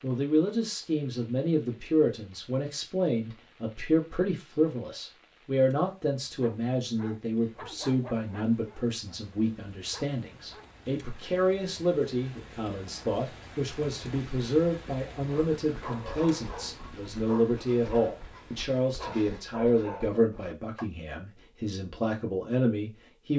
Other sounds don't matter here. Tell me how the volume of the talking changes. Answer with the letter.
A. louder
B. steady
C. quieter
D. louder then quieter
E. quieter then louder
B.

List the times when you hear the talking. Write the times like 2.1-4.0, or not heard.
0.0-23.3.